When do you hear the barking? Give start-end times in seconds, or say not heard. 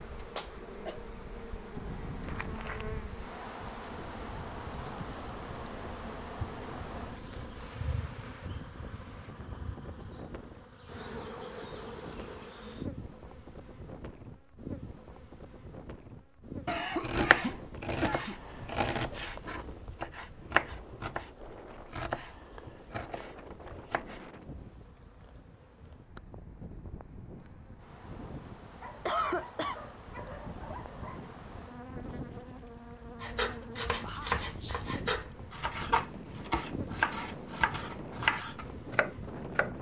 28.6-31.3.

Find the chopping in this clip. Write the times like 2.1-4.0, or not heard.
17.0-24.3, 33.2-39.7.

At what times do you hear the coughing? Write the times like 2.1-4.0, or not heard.
0.3-1.0, 16.6-18.4, 29.1-29.8.